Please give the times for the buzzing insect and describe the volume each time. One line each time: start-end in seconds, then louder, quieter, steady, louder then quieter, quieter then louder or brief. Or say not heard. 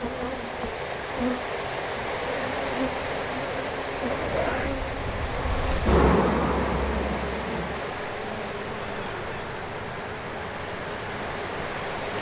0.0-11.9 louder then quieter.